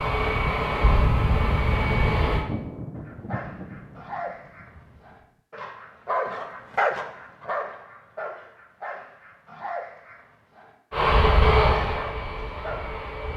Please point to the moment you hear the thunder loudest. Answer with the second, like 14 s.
3 s.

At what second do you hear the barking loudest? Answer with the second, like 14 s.
7 s.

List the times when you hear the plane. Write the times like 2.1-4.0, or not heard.
0.0-2.5, 10.9-13.3.